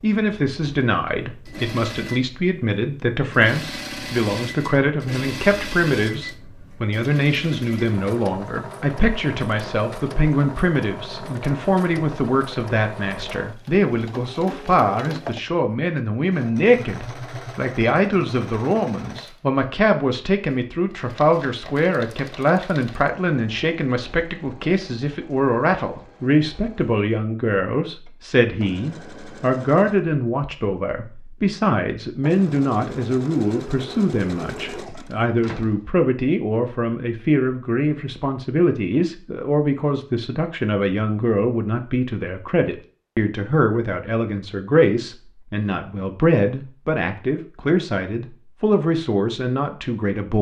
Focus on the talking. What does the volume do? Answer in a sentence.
The loudness of the talking stays about the same.